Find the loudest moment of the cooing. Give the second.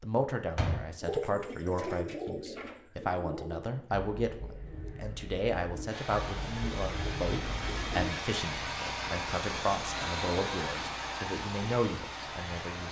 1 s.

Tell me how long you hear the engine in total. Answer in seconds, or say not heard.
7 s.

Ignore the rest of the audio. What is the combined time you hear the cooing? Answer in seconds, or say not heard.
7 s.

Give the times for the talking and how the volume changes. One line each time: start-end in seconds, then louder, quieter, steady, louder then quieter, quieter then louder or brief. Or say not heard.
0.0-12.8 steady.